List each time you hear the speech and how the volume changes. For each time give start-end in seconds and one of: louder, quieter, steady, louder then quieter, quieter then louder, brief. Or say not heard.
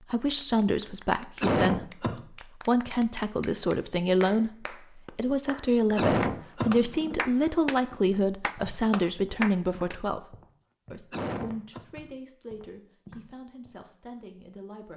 0.1-14.9 quieter.